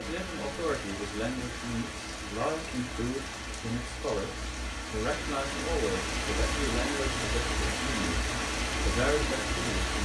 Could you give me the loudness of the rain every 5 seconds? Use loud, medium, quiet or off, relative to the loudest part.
medium, loud.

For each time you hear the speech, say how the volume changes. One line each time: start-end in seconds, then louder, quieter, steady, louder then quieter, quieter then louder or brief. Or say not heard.
0.0-10.0 steady.